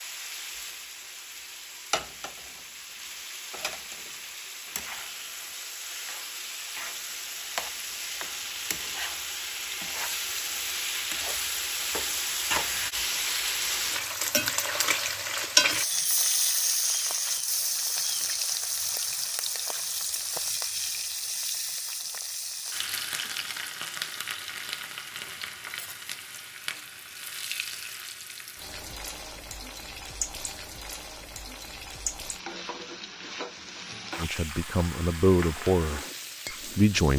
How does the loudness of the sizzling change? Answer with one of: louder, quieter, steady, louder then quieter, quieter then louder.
louder then quieter.